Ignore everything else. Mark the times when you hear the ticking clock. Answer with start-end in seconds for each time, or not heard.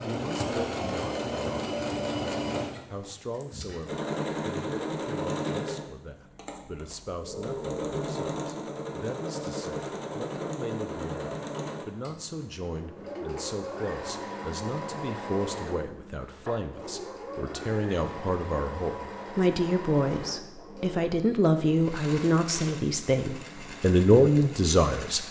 not heard.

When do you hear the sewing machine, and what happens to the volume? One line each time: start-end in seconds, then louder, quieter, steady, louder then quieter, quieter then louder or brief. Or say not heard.
0.0-25.2 quieter.